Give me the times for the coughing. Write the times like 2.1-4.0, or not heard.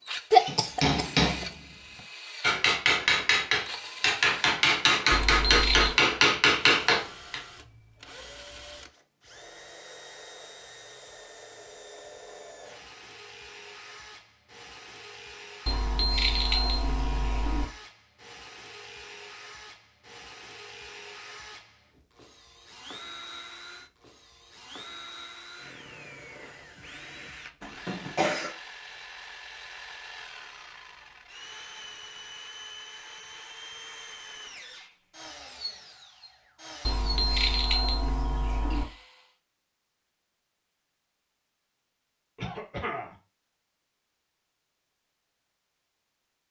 0.3-1.4, 27.6-28.6, 42.4-43.1.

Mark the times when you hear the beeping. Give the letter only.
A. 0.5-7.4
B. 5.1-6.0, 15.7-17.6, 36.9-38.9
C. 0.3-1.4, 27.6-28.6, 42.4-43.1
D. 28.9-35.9
B.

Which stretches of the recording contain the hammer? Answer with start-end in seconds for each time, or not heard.
0.5-7.4.